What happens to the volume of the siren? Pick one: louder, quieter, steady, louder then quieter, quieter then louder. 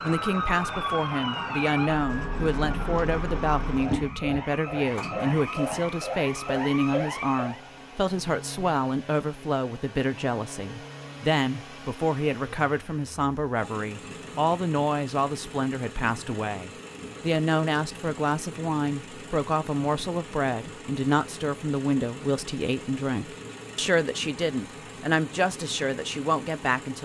steady.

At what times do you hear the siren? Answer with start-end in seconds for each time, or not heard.
0.0-7.6.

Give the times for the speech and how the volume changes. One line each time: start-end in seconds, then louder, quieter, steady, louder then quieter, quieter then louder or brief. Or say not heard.
0.0-26.9 steady.